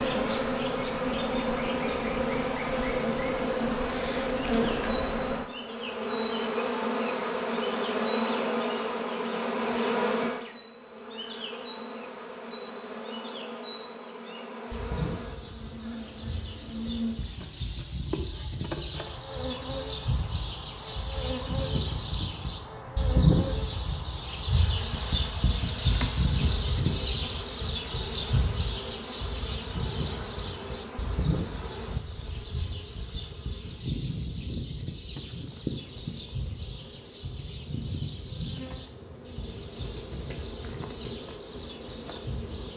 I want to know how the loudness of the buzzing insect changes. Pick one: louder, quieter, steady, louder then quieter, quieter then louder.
quieter.